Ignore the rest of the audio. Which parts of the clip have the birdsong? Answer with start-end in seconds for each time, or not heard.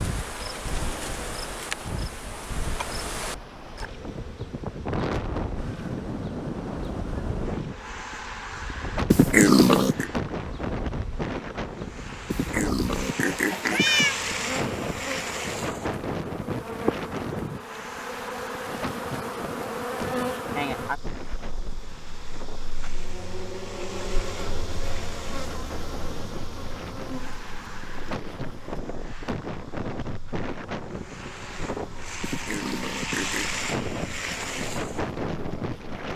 not heard.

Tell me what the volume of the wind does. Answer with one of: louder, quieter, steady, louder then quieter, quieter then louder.
quieter then louder.